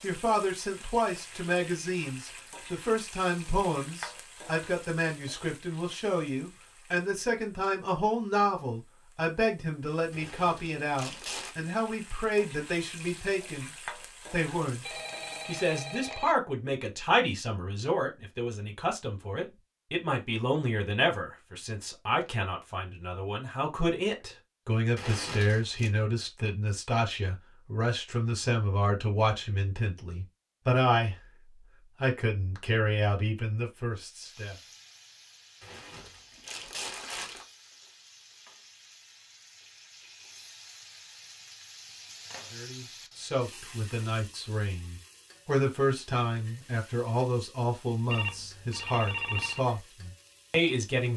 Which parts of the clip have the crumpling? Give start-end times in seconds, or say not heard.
10.1-11.6, 24.9-25.9, 35.6-37.5.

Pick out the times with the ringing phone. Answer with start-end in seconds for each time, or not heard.
14.8-16.4, 48.0-49.6.